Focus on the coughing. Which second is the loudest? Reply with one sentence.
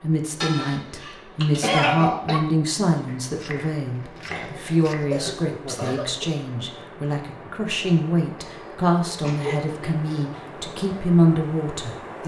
The volume of the coughing peaks at 2 seconds.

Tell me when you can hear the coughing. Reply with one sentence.
The coughing can be heard from 0.4 to 2.4 s, from 4.3 to 6.3 s and from 8.6 to 10.2 s.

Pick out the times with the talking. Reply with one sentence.
You can hear the talking from 0.0 to 12.2 s.